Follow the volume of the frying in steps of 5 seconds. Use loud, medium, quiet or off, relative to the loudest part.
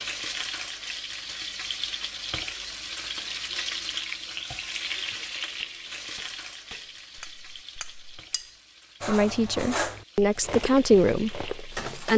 loud, medium, medium.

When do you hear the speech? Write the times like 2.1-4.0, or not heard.
9.1-12.1.